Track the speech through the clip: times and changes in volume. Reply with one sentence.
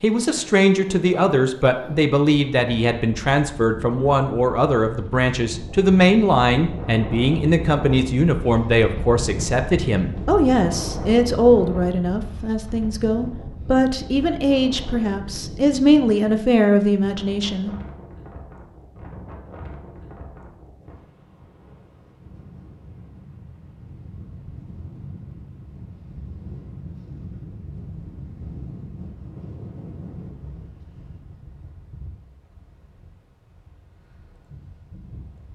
The speech can be heard from 0.0 to 17.8 s, at a steady volume.